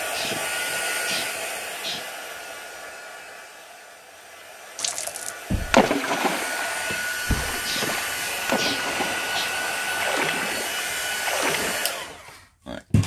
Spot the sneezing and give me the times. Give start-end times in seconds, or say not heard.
0.1-2.1, 7.6-9.6.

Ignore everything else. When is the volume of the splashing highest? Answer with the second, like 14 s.
6 s.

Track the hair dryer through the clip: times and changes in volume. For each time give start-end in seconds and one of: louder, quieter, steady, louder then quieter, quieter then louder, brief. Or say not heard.
0.0-13.0 quieter then louder.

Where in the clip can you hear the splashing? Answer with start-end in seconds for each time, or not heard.
4.8-11.8.